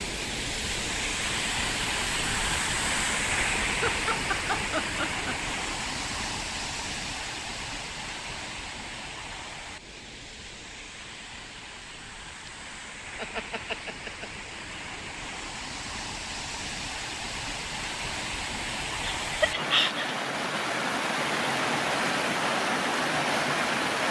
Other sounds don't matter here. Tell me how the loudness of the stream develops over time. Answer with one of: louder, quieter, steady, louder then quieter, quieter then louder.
quieter then louder.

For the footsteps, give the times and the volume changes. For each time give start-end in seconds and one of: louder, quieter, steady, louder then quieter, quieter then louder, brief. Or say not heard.
not heard.